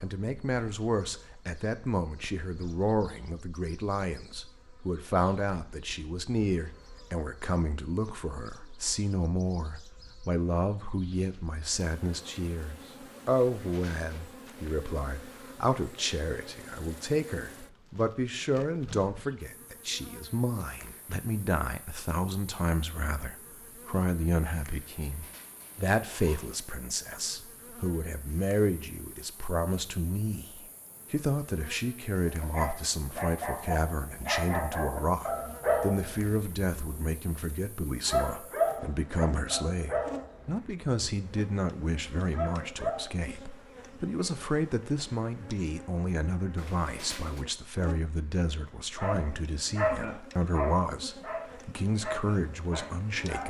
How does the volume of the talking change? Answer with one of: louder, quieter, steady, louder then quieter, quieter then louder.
steady.